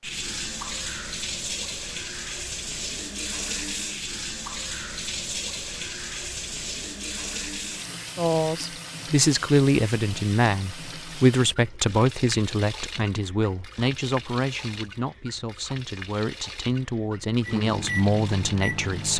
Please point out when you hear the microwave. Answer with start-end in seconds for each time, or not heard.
17.4-19.1.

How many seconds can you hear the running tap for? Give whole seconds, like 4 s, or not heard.
19 s.